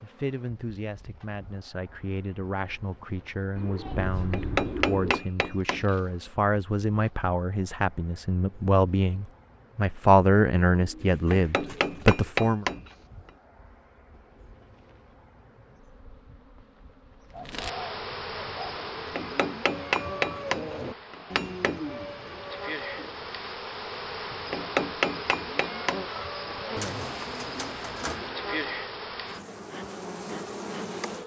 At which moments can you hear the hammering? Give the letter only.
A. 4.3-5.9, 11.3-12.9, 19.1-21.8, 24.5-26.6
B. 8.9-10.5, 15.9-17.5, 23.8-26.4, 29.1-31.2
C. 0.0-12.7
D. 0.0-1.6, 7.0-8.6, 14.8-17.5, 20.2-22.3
A.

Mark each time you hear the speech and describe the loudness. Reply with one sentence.
You can hear the speech from 0.0 to 12.7 s, getting louder.